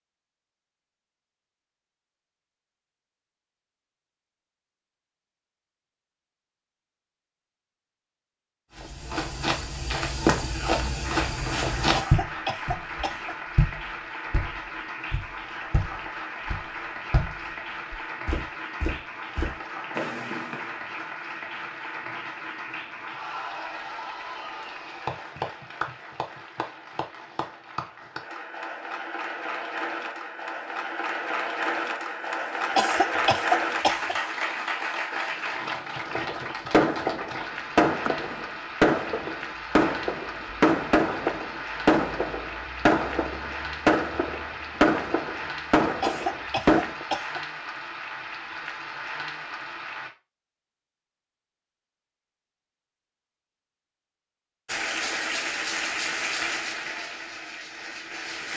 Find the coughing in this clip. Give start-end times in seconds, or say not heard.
11.9-13.3, 32.8-34.1, 46.0-47.5.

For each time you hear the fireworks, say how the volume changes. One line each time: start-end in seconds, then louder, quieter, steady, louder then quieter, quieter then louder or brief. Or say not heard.
36.0-47.0 steady.